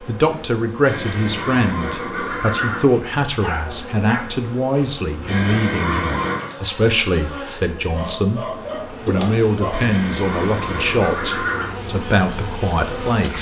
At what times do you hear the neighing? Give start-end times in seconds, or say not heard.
0.8-2.9, 5.2-6.5, 9.7-11.8.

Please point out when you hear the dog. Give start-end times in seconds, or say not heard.
3.3-4.5, 7.8-9.8.